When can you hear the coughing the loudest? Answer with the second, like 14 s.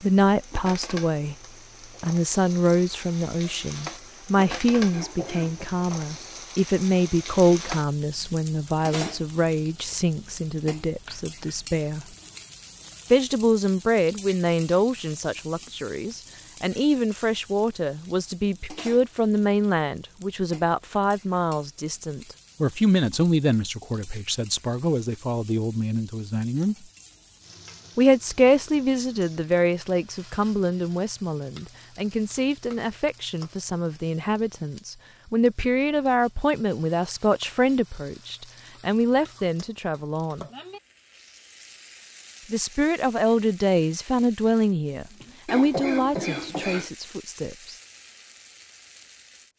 46 s.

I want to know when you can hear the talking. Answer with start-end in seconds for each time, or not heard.
0.0-1.4, 2.0-12.1, 13.1-26.8, 27.9-40.5, 42.5-47.8.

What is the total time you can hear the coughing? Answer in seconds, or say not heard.
2 s.